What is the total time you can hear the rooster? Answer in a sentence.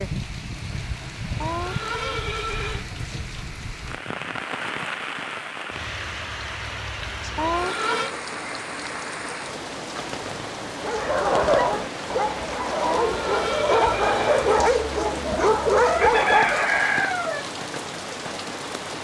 You can hear the rooster for 2 seconds altogether.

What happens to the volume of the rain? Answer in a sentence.
The loudness of the rain stays about the same.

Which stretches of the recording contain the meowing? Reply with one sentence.
The meowing can't be heard in this clip.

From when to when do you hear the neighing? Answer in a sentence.
You can hear the neighing from 1.4 to 2.9 s, from 7.3 to 8.1 s and from 12.8 to 14.7 s.